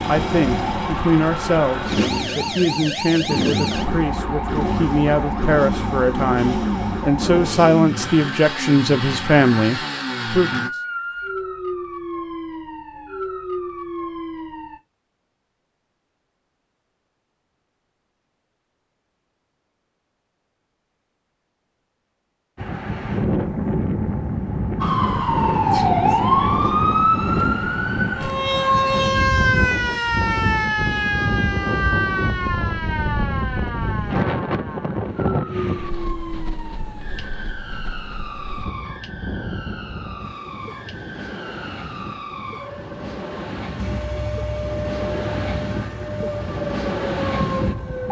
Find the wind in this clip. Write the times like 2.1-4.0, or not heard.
22.6-48.0.